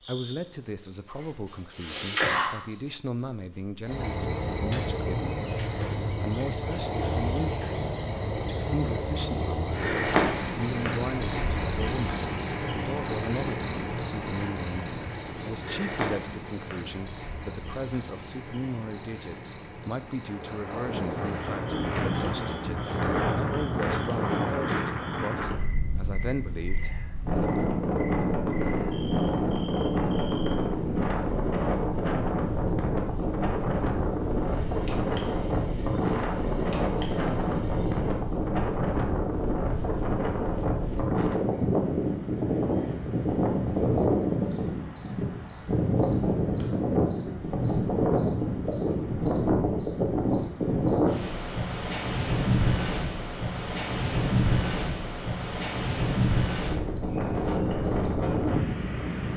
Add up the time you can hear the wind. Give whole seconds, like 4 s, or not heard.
39 s.